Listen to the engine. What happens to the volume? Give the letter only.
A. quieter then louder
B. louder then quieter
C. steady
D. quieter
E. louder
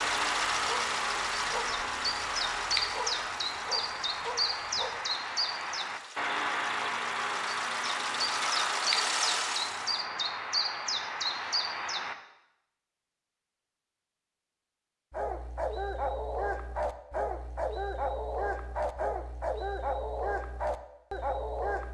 A.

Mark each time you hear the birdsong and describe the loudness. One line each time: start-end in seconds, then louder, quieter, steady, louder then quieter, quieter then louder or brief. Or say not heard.
0.0-12.2 steady.